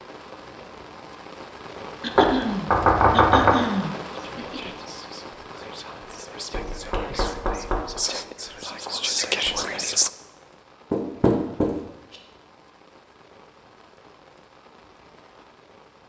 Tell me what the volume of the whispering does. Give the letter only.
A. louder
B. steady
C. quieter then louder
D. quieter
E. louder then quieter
A.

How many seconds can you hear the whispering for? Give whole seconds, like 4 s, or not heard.
6 s.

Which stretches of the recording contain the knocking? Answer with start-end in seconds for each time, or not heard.
2.1-3.5, 6.5-8.0, 10.9-12.2.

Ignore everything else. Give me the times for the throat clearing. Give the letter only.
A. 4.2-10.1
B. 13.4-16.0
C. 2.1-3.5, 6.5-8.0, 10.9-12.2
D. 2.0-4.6
D.